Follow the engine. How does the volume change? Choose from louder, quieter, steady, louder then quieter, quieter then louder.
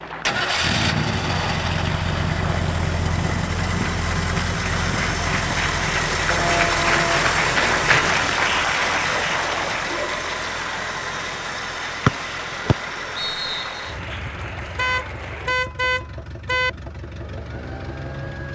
quieter.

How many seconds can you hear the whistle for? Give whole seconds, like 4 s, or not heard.
2 s.